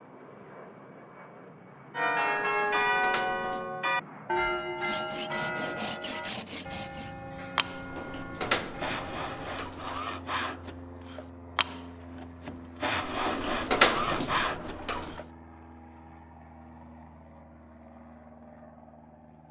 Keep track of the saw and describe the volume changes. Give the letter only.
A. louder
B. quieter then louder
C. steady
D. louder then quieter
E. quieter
A.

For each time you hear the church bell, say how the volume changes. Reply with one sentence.
The church bell can be heard from 1.9 to 9.6 s, getting quieter.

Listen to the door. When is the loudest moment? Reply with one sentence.
The volume of the door peaks at 14 seconds.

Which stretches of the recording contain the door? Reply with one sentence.
The door can be heard from 2.5 to 3.6 s, from 7.8 to 10.0 s and from 13.1 to 15.2 s.